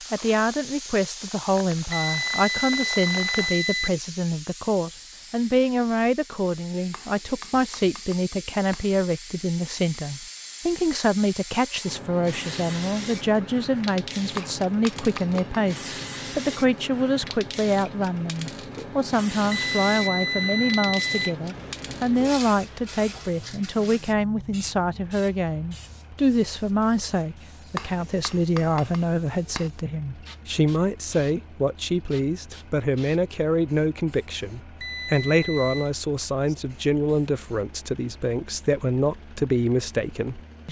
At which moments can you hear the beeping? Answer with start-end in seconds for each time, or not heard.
1.9-3.9, 19.5-21.4, 34.8-35.9.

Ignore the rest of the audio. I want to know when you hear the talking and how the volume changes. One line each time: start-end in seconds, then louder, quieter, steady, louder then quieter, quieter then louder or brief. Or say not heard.
0.1-40.6 steady.